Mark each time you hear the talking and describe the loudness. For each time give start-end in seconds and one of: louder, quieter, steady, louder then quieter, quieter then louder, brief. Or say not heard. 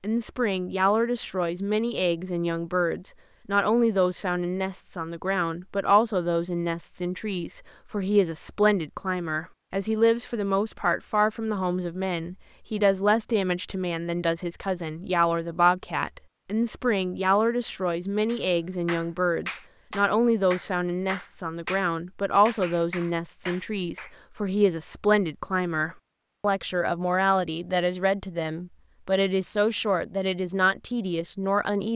0.0-31.9 steady.